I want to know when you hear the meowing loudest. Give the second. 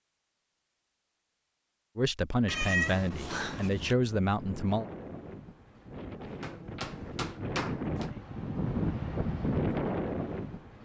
3 s.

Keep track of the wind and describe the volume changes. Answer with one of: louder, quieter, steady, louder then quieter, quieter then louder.
louder.